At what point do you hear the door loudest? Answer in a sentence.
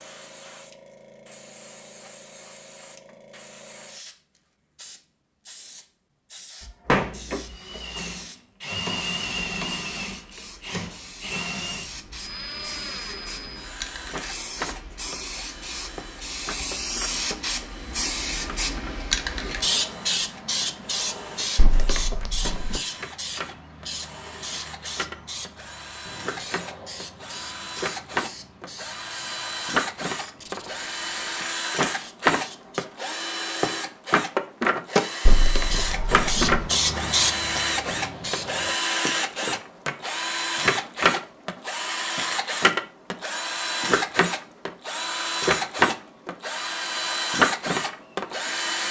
The loudest moment of the door is at 7 seconds.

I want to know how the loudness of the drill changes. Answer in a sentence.
The volume of the drill goes down, then up.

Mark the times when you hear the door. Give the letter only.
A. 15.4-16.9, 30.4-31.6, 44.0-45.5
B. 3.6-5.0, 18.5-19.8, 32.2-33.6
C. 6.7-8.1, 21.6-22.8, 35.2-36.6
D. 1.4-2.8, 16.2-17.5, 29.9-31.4
C.